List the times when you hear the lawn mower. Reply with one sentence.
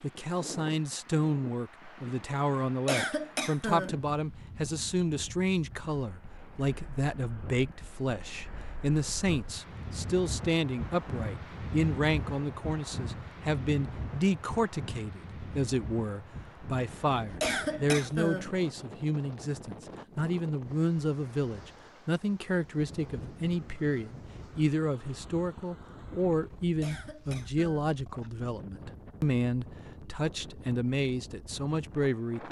The lawn mower can't be heard in this clip.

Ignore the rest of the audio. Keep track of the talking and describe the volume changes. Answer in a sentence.
The loudness of the talking stays about the same.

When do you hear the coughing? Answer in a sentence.
The coughing can be heard from 2.9 to 4.0 s, from 17.4 to 18.6 s and from 26.8 to 27.9 s.